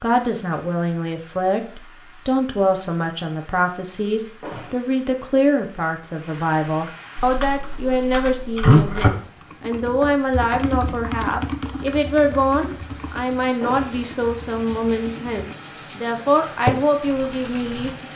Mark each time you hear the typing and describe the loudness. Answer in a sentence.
You can hear the typing from 7.2 to 15.5 s, getting quieter; and briefly from 16.6 to 17.9 s.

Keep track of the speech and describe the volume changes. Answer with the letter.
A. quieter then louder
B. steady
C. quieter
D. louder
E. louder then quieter
B.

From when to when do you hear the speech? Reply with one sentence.
You can hear the speech from 0.0 to 18.1 s.